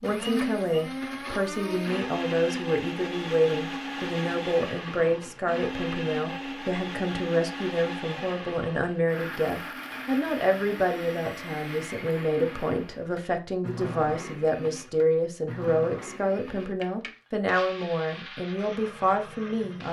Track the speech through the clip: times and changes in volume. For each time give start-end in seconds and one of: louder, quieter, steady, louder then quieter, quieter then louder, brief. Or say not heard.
0.0-19.8 steady.